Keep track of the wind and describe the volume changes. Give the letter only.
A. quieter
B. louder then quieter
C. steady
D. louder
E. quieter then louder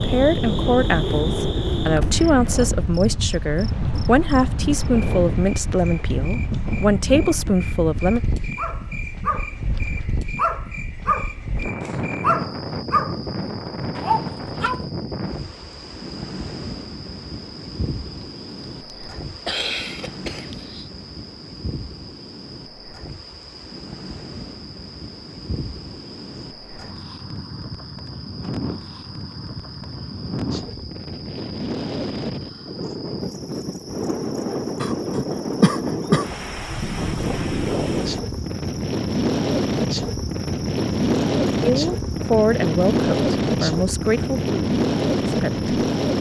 E.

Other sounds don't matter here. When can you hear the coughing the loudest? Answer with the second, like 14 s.
36 s.